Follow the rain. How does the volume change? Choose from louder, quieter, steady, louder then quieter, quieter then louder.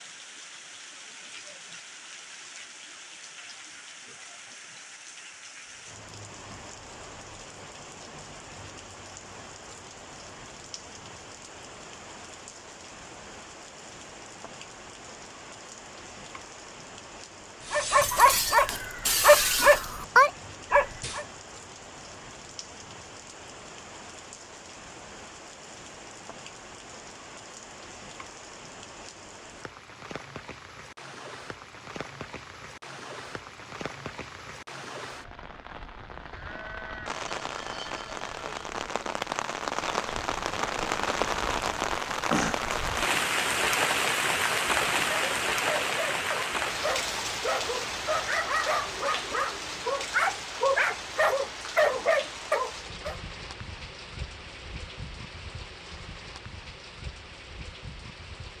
louder then quieter.